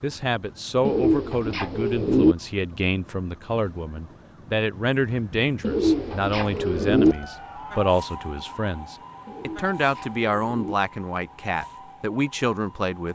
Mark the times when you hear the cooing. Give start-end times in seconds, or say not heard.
0.8-2.4, 5.6-7.2, 9.2-10.8.